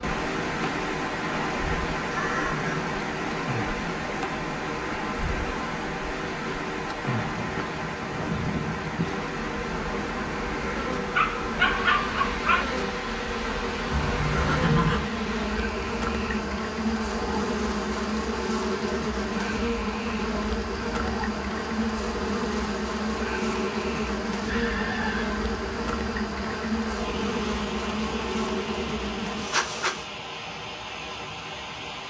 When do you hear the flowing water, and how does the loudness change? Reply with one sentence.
The flowing water can be heard from 0.0 to 32.0 s, getting quieter.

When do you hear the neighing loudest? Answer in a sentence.
The volume of the neighing peaks at 15 seconds.